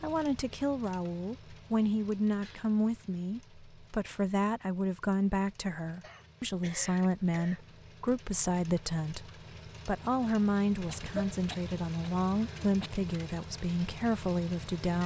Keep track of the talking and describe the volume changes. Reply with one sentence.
The volume of the talking stays about the same.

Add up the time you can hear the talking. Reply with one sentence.
The talking can be heard for 15 seconds in total.